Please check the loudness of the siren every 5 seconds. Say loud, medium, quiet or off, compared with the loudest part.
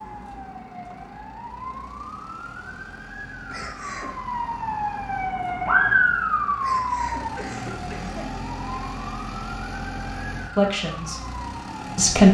medium, loud, quiet.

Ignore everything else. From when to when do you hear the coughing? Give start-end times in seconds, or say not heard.
3.5-4.2, 6.6-8.3.